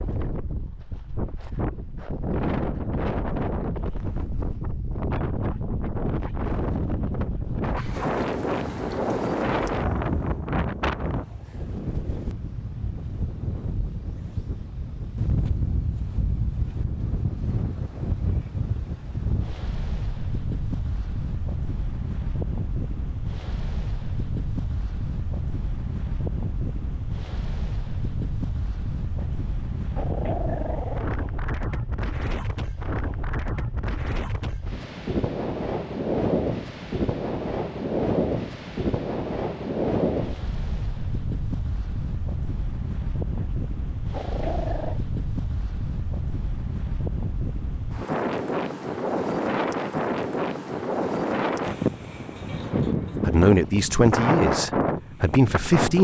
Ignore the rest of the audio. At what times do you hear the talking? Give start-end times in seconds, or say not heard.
53.2-55.9.